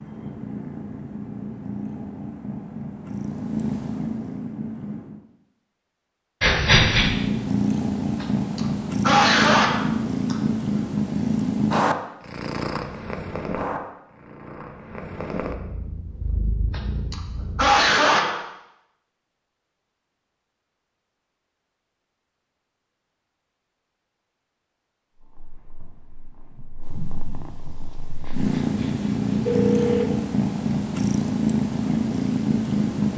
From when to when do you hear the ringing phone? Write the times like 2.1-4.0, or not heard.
6.4-7.1, 28.2-30.1.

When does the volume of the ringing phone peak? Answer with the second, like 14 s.
7 s.